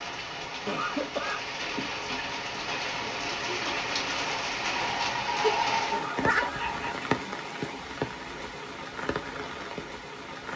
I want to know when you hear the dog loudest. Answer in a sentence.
The loudest moment of the dog is at 6 seconds.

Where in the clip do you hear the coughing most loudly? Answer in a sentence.
The volume of the coughing peaks at 1 second.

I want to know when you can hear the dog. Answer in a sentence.
You can hear the dog from 4.6 to 7.0 s.